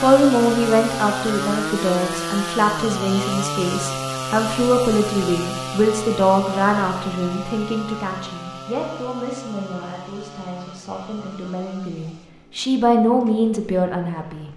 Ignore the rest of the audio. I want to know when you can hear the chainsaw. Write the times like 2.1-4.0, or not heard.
0.0-14.5.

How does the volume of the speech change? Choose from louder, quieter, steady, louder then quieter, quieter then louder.
quieter then louder.